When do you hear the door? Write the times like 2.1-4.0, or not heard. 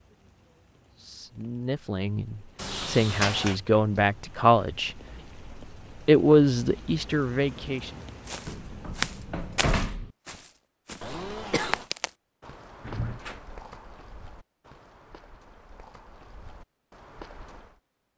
2.5-3.5, 8.4-10.1, 12.8-13.4.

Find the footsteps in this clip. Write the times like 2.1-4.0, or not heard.
8.2-17.8.